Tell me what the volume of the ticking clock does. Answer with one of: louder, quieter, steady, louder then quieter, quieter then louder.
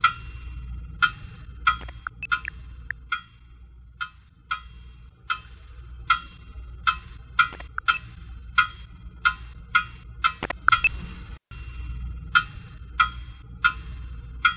quieter then louder.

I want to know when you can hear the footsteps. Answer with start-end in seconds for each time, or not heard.
not heard.